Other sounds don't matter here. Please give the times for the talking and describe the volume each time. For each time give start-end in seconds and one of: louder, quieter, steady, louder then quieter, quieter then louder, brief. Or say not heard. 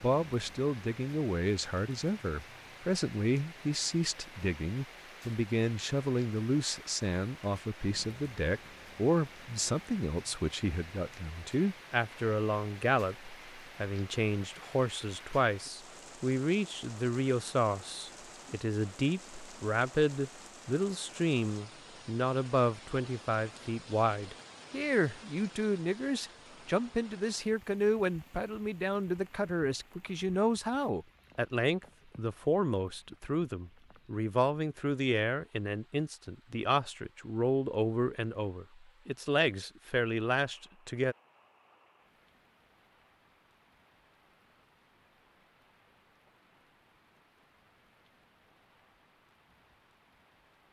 0.0-41.1 steady.